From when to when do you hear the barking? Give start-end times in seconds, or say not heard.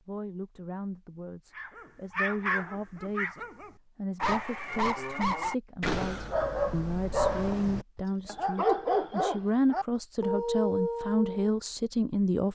1.6-11.6.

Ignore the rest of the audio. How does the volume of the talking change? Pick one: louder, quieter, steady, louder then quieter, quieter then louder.
louder.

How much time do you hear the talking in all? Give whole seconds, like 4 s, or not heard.
12 s.